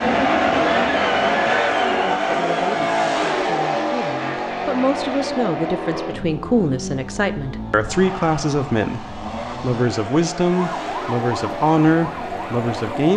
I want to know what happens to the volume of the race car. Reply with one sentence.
The loudness of the race car goes down.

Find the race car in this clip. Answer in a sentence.
The race car can be heard from 0.0 to 13.1 s.